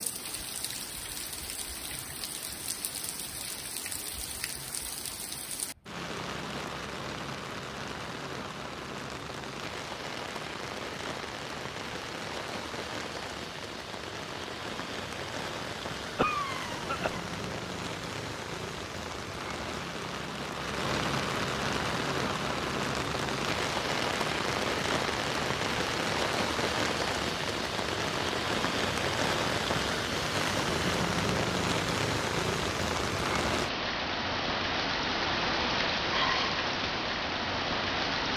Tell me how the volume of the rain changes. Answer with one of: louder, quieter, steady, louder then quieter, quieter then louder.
louder.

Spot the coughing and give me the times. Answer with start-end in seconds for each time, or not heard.
16.1-17.2.